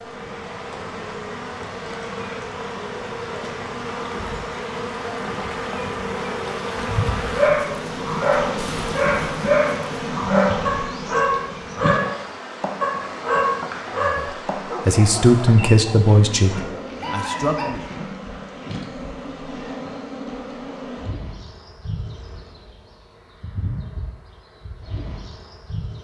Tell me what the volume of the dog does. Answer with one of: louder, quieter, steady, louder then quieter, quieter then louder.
quieter.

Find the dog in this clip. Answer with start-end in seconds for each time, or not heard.
7.3-17.7.